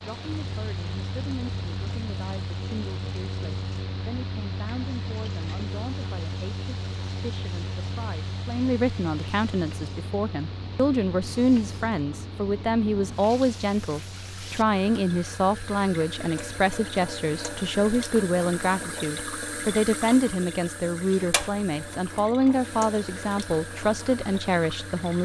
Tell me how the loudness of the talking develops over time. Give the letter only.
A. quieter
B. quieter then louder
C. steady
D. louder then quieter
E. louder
E.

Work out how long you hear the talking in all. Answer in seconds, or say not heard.
25 s.